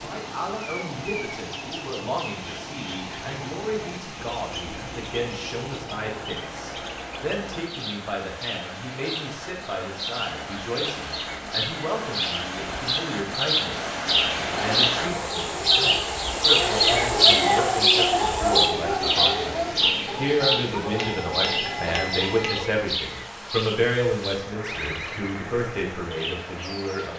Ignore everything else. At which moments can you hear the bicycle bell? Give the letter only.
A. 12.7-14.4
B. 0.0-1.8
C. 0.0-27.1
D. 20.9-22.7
D.